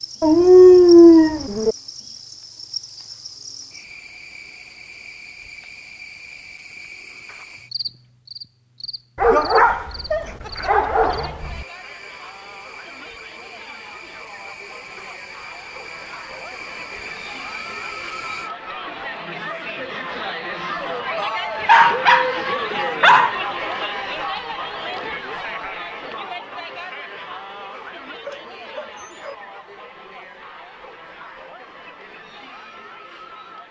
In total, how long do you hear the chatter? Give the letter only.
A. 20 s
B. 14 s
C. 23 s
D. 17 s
C.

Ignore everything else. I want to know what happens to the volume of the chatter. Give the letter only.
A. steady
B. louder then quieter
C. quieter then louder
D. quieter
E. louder
B.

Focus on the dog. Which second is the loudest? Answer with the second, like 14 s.
1 s.